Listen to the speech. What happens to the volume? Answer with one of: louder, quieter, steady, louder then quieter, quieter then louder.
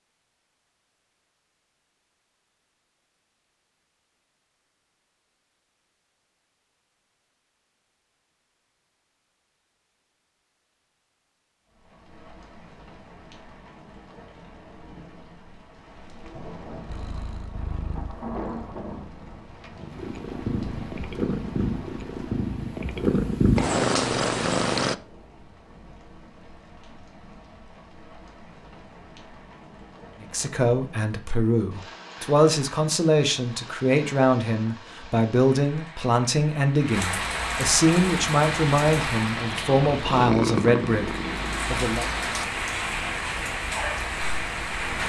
steady.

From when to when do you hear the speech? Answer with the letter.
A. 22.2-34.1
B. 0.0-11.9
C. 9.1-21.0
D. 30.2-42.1
D.